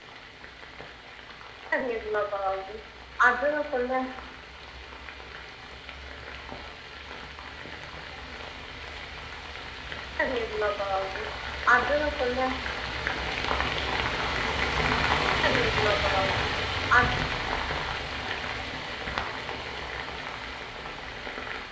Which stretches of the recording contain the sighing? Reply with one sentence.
The sighing can be heard from 1.7 to 4.1 s, from 10.2 to 12.6 s and from 15.4 to 17.1 s.